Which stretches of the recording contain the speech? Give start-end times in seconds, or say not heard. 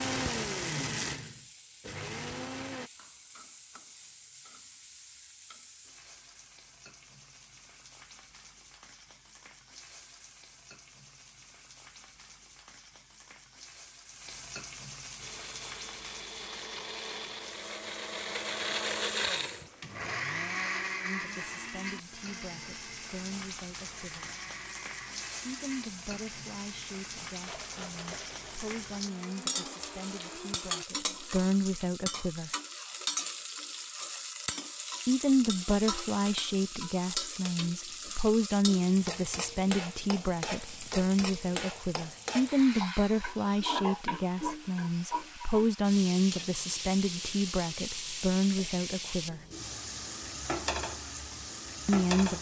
21.0-24.3, 25.4-32.5, 35.0-49.4, 51.9-52.3.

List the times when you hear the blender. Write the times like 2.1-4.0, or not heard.
0.0-2.9, 15.2-30.9.